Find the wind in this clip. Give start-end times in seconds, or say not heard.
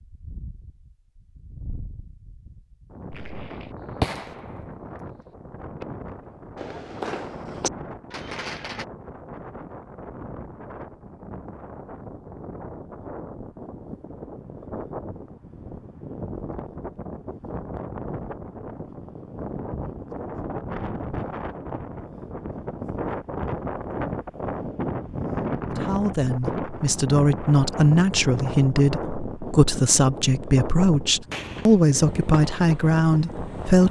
0.0-33.8.